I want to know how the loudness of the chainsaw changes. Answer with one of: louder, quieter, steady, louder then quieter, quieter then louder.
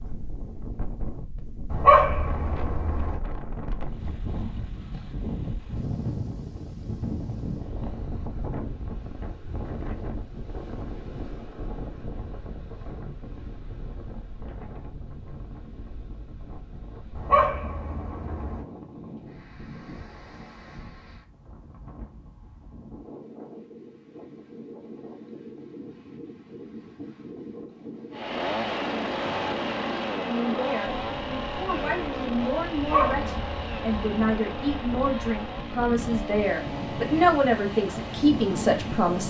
quieter.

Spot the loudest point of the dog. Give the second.
2 s.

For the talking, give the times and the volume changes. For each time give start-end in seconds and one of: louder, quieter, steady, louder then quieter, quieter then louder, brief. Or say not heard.
30.2-39.2 louder.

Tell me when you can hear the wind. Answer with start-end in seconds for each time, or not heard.
0.0-39.2.